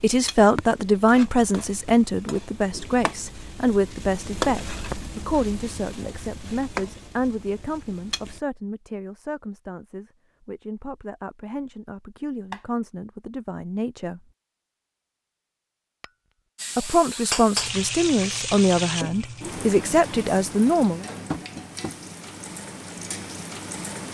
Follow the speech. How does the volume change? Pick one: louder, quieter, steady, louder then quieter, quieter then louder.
quieter then louder.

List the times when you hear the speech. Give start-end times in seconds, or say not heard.
0.0-14.2, 16.8-21.1.